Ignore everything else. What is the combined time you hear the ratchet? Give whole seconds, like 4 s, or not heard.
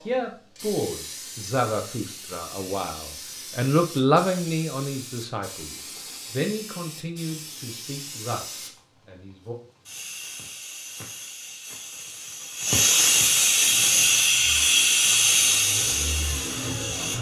not heard.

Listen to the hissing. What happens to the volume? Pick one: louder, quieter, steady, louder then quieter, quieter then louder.
louder.